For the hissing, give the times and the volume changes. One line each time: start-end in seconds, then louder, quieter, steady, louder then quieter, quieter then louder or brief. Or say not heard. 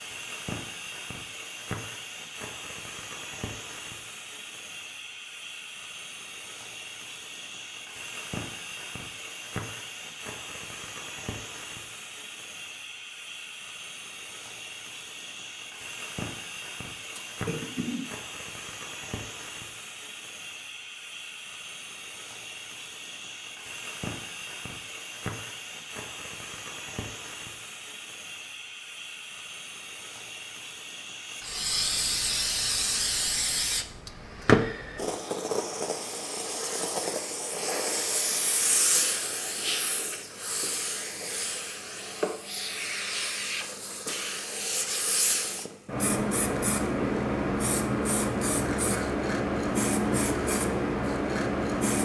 0.0-52.0 louder.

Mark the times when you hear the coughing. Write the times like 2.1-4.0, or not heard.
17.1-18.1.